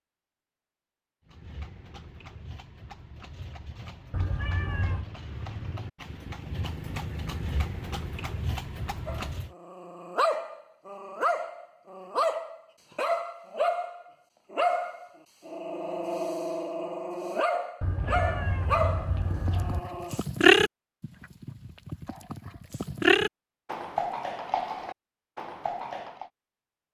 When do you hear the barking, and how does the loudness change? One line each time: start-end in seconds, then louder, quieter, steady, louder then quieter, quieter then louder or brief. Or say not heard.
9.1-20.2 steady.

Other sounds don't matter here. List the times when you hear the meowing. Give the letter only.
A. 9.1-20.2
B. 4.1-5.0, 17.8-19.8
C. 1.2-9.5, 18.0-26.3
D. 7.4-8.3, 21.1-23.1
B.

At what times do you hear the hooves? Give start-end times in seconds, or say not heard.
1.2-9.5, 18.0-26.3.